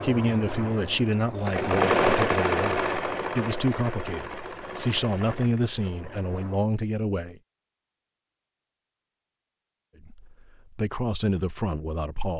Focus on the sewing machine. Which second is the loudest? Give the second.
2 s.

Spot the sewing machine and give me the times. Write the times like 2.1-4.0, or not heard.
0.0-6.6.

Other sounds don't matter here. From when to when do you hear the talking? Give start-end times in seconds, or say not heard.
0.0-7.3, 10.0-12.3.